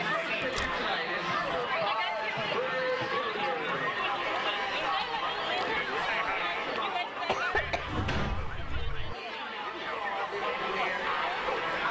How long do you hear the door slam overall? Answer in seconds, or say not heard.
2 s.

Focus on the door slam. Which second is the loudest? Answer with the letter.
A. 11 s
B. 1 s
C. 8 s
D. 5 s
C.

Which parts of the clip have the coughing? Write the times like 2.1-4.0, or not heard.
1.2-3.2, 7.2-8.0.